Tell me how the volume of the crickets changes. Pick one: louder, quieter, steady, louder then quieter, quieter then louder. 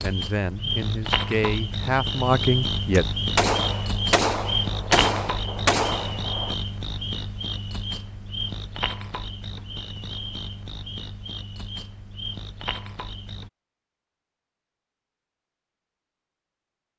quieter.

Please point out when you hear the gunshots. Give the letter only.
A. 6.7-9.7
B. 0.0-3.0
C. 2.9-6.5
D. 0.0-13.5
C.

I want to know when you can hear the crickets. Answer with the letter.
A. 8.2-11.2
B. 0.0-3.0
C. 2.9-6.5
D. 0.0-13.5
D.